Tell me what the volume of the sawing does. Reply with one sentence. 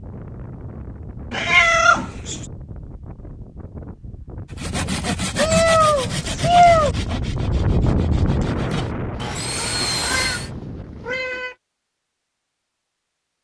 The loudness of the sawing goes down, then up.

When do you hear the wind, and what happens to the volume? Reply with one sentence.
The wind can be heard from 0.0 to 11.3 s, getting louder then quieter.